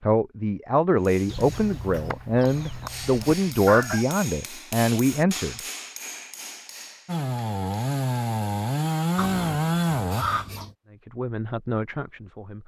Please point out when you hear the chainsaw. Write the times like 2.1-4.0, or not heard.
7.0-10.2.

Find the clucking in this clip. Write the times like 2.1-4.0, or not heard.
1.2-4.0, 9.2-10.8.